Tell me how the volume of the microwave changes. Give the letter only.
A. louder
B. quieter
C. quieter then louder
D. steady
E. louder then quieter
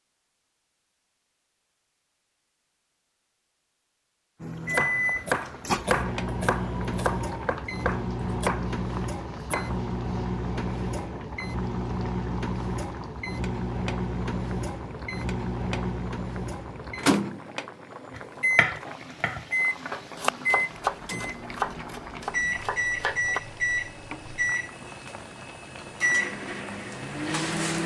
D.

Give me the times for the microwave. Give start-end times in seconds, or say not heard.
4.4-27.8.